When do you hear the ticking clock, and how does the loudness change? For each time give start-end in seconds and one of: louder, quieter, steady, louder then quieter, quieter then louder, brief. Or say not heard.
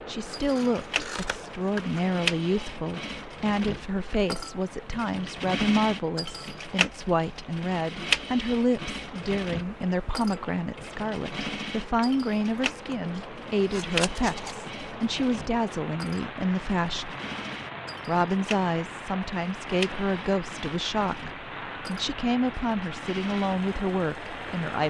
not heard.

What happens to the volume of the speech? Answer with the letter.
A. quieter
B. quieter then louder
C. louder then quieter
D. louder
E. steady
E.